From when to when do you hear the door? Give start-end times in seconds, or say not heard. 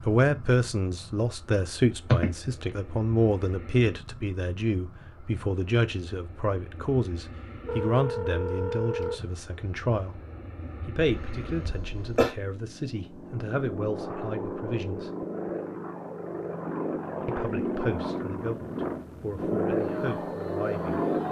not heard.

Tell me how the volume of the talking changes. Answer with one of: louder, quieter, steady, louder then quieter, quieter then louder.
quieter.